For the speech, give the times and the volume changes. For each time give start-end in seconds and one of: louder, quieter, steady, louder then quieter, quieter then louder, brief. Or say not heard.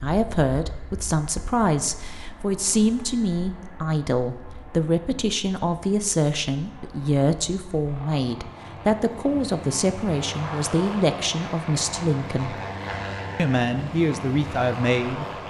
0.0-12.6 steady
13.3-15.2 brief.